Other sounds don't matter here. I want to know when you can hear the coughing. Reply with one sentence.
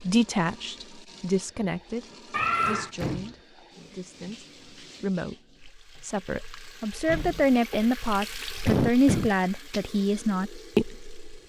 The coughing can be heard from 2.3 to 2.9 s and from 8.7 to 9.3 s.